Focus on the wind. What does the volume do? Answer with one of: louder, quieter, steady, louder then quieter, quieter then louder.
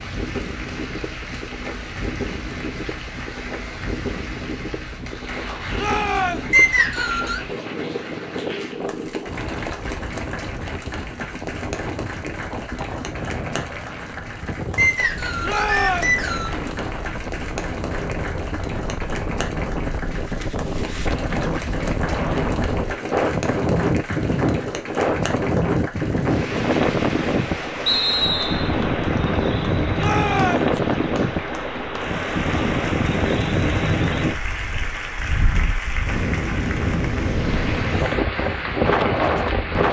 louder.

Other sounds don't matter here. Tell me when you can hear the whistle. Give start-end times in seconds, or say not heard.
6.5-7.4, 14.8-16.6, 27.9-28.7.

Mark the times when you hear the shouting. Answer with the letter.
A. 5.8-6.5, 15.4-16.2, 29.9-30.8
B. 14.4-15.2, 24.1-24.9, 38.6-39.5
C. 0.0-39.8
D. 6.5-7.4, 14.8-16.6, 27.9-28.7
A.